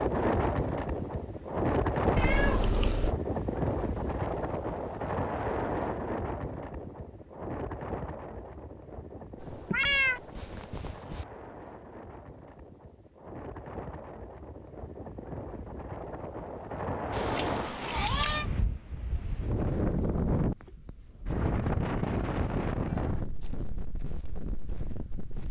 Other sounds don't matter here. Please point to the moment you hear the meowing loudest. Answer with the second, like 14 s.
10 s.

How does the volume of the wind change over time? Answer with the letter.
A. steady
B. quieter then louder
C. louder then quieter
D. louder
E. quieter
B.